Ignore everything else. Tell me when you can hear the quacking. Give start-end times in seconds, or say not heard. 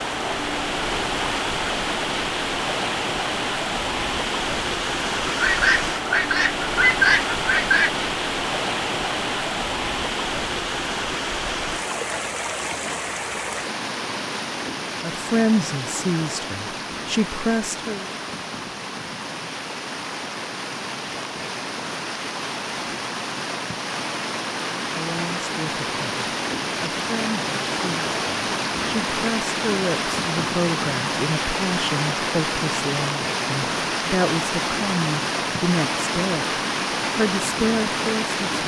5.3-8.0.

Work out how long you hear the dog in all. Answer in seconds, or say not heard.
not heard.